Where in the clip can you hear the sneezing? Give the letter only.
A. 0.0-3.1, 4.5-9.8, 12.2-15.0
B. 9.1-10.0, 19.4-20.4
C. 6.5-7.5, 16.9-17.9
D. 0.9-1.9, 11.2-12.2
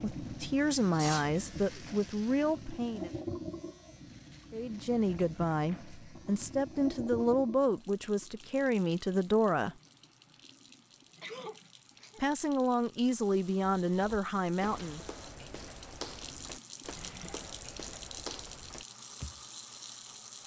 D.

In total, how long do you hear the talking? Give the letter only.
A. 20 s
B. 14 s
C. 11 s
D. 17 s
C.